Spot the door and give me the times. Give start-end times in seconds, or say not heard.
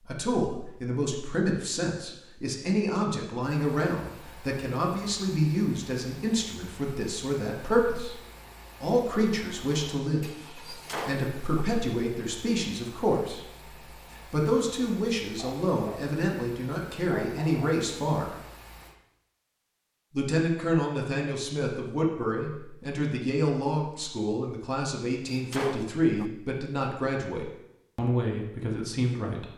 10.7-11.7, 25.2-26.3.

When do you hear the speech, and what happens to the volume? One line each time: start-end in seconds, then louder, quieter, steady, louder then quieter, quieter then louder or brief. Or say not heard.
0.1-8.2 steady
8.8-13.4 steady
14.2-18.4 steady
20.1-29.5 steady.